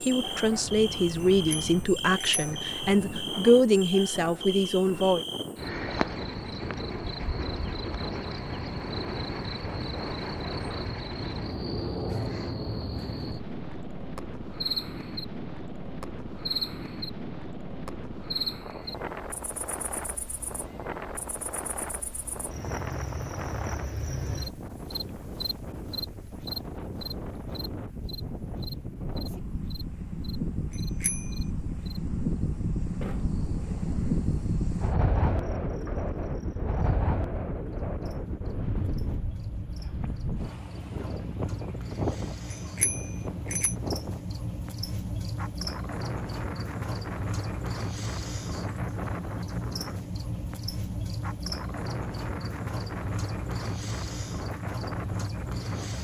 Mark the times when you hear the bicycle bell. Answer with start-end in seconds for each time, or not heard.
1.2-2.7, 30.7-31.4, 42.5-43.8.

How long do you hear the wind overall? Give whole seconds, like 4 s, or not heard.
56 s.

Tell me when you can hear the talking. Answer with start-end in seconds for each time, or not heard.
0.0-5.2.